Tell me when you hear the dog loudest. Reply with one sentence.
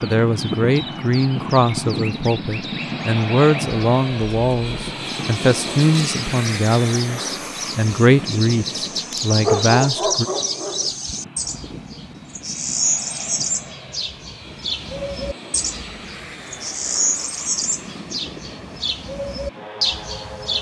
The volume of the dog peaks at 10 seconds.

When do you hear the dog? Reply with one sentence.
You can hear the dog from 9.4 to 10.9 s.